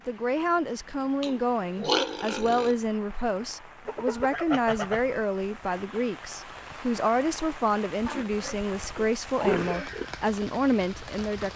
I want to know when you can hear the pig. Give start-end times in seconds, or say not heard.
1.2-2.8, 8.1-10.1.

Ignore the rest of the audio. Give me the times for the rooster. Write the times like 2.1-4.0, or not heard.
3.9-5.2.